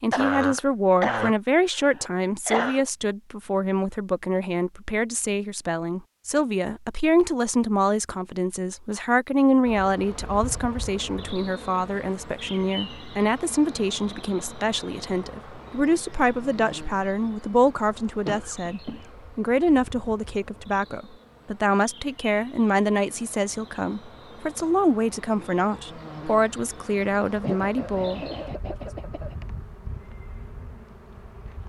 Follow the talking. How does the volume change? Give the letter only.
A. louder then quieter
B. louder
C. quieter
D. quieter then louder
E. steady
E.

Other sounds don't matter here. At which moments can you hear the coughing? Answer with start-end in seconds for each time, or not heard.
0.1-2.9, 18.2-19.1, 27.4-29.4.